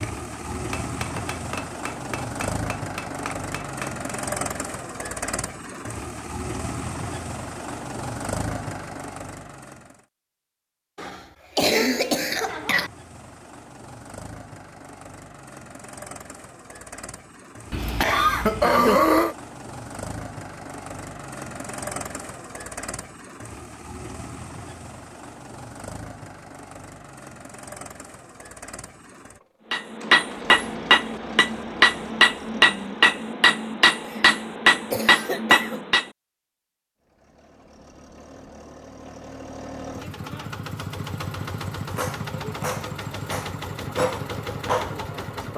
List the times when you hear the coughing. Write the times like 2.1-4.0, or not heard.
10.9-12.9, 17.7-19.4, 34.0-35.8.